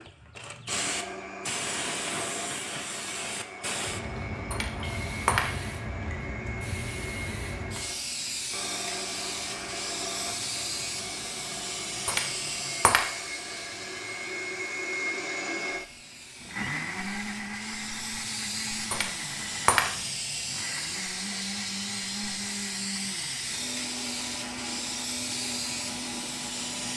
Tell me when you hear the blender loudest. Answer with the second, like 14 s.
15 s.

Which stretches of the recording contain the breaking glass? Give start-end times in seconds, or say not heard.
4.5-5.8, 12.1-13.1, 18.9-19.9.